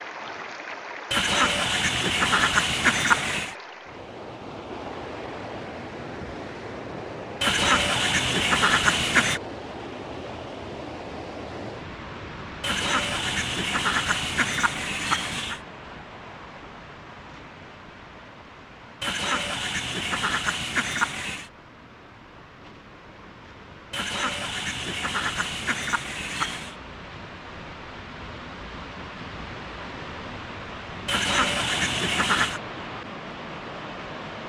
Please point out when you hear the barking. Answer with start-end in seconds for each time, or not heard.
not heard.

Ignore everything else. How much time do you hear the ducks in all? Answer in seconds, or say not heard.
14 s.